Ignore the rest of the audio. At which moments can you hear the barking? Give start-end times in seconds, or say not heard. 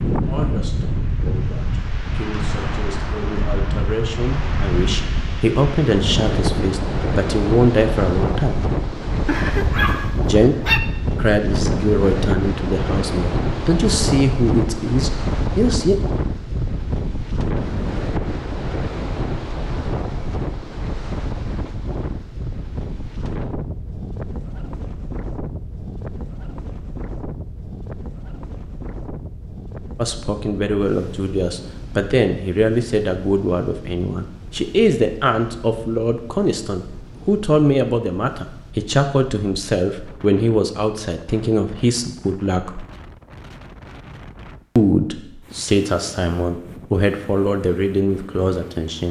9.2-10.8.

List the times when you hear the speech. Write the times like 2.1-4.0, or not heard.
0.1-8.7, 10.2-15.9, 29.9-42.9, 44.8-49.0.